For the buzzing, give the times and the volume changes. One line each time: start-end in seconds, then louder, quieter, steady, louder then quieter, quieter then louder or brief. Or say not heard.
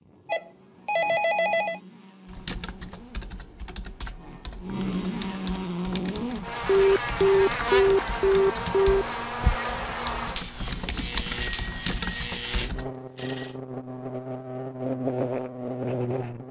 0.0-16.4 louder.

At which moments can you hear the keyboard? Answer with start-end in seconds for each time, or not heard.
2.2-12.9.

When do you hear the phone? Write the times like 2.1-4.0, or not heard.
0.2-1.8, 6.7-9.1, 11.4-13.7.